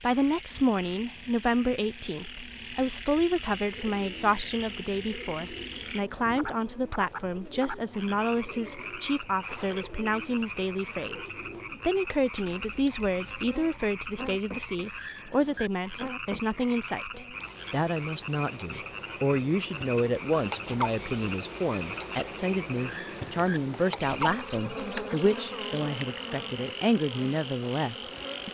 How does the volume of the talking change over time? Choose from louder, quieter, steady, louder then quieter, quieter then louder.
steady.